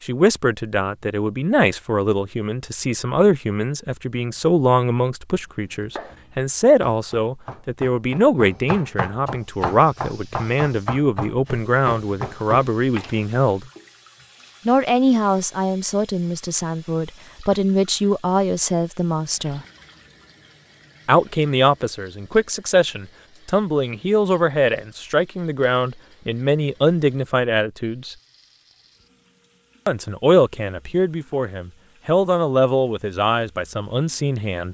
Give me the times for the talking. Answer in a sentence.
The talking can be heard from 0.0 to 13.7 s, from 14.7 to 19.6 s, from 21.1 to 28.1 s and from 29.9 to 34.6 s.